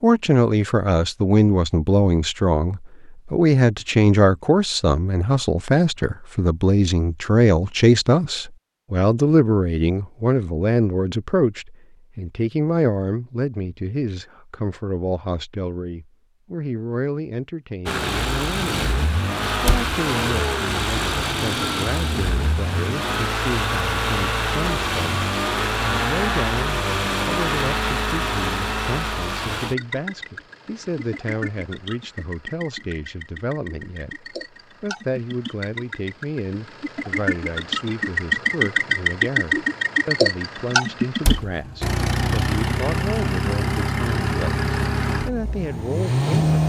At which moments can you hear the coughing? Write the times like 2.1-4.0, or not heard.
not heard.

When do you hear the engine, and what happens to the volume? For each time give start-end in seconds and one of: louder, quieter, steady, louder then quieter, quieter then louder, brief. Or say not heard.
17.9-46.6 quieter then louder.